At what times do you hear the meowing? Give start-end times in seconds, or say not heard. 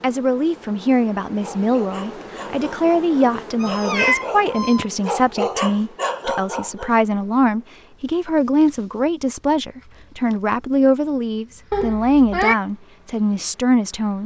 3.6-4.8, 11.7-12.6.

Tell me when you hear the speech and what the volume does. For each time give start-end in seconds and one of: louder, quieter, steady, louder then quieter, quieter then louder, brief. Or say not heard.
0.0-14.2 steady.